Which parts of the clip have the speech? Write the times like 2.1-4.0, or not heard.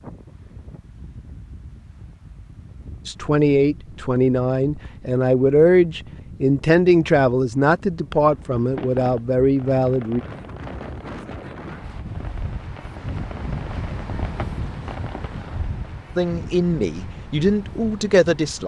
3.0-10.2, 16.1-18.6.